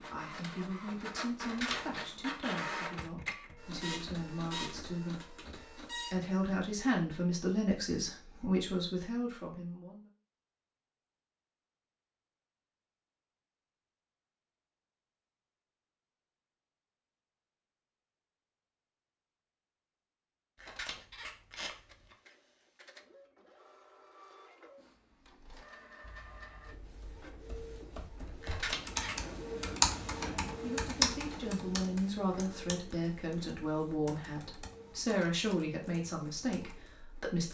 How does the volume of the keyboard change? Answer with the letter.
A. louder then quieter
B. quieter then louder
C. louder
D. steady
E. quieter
A.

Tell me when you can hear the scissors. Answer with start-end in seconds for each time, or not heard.
1.4-2.0, 20.6-22.1, 28.4-29.3.